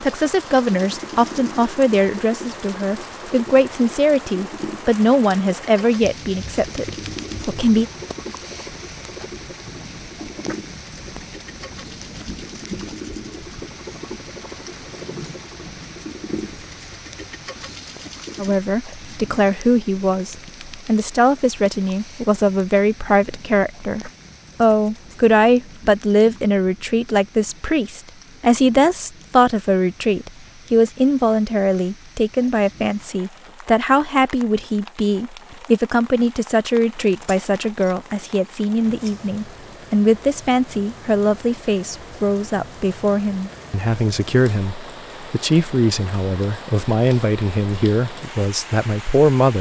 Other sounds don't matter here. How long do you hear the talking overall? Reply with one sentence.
The talking can be heard for 39 seconds in total.